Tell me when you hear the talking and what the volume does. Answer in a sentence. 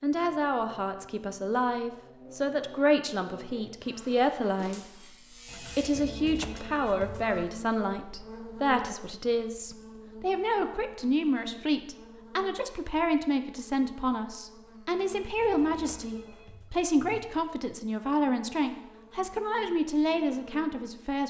You can hear the talking from 0.0 to 21.2 s, at a steady volume.